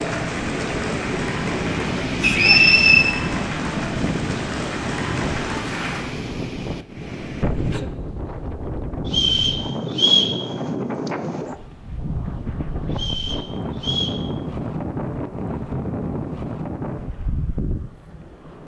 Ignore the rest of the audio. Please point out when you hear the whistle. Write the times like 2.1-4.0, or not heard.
2.2-3.1, 9.1-10.3, 12.9-14.2.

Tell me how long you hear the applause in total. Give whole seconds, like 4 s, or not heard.
6 s.